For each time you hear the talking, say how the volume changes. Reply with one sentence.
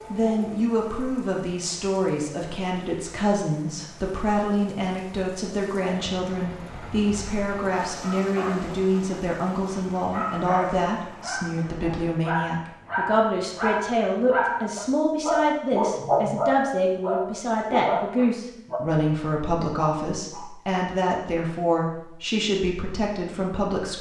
You can hear the talking from 0.1 to 23.9 s, at a steady volume.